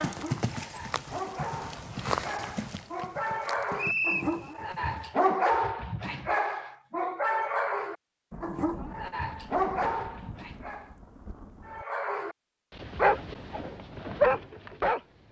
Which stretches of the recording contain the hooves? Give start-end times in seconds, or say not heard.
0.0-5.1.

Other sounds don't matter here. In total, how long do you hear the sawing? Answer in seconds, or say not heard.
not heard.